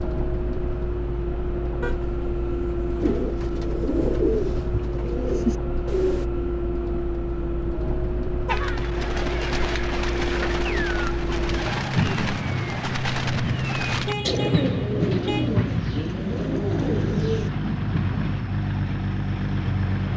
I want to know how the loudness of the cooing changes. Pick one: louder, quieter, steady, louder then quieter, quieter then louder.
steady.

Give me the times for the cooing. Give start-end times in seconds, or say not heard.
3.0-6.2, 8.4-17.5.